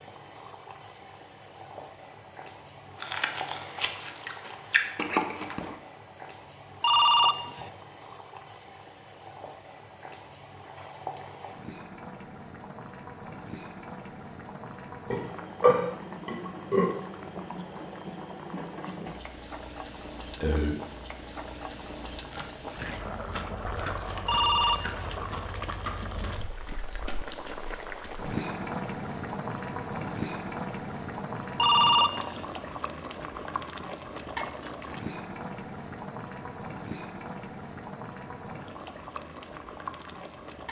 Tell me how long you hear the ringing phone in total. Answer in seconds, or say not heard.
3 s.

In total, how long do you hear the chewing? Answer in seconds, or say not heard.
9 s.